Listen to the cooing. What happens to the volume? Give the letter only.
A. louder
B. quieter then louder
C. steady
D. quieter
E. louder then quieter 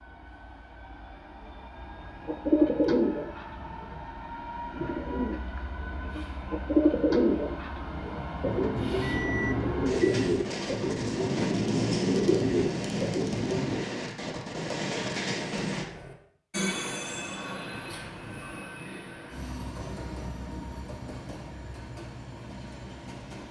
C.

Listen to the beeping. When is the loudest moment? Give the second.
9 s.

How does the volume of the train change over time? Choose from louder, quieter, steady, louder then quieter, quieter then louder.
louder then quieter.